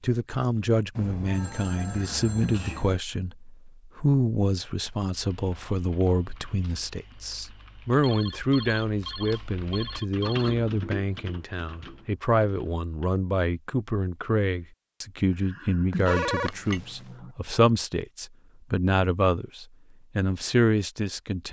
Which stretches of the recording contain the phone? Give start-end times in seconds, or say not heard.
0.9-3.0, 8.0-10.6, 15.9-17.1.